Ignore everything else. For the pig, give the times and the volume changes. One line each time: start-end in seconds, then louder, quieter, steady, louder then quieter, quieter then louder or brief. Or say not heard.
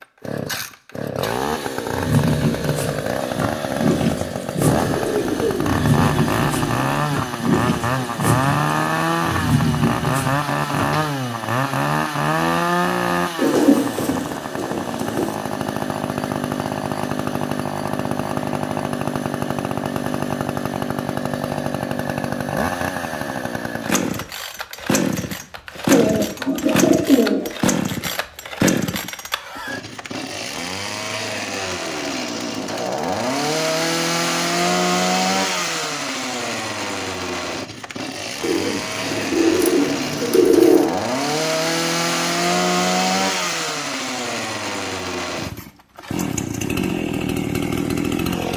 1.9-11.1 steady.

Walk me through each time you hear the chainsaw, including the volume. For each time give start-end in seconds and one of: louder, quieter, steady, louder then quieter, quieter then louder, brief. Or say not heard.
0.0-48.5 steady.